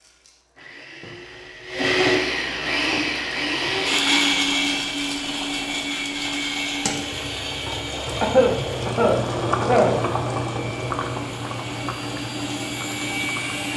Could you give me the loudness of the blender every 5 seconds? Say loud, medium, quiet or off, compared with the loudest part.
loud, medium, medium.